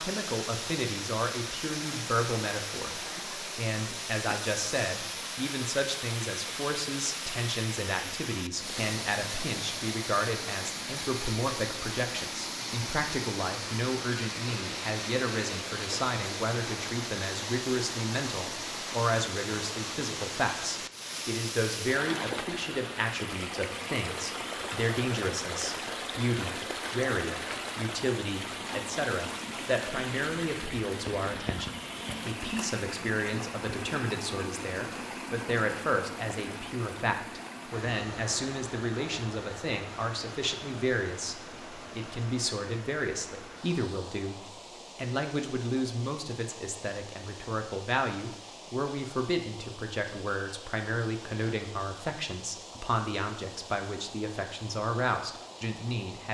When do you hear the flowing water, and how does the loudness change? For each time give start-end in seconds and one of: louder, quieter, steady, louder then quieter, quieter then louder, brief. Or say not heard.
0.0-56.3 quieter.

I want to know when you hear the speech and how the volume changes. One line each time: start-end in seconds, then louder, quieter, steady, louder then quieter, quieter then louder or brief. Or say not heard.
0.0-44.4 steady
45.0-56.3 steady.